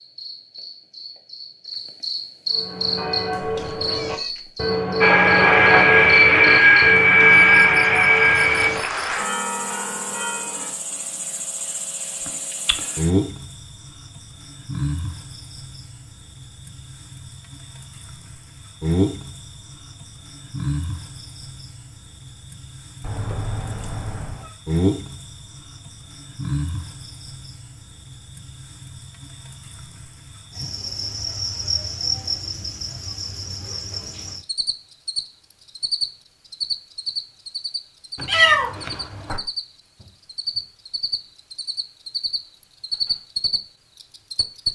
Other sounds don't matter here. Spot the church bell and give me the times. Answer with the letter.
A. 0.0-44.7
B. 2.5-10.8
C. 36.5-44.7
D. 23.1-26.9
B.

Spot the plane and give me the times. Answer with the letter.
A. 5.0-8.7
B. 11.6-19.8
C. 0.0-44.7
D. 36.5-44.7
A.